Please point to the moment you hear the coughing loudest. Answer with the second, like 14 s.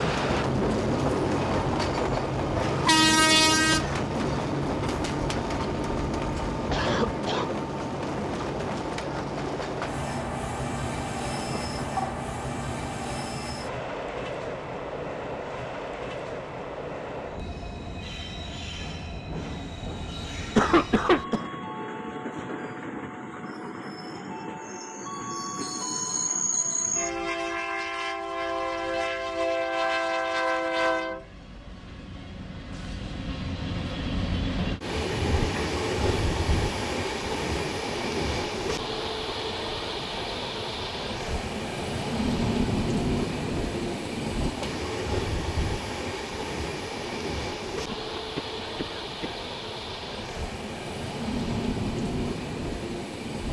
21 s.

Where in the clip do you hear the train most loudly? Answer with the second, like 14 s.
3 s.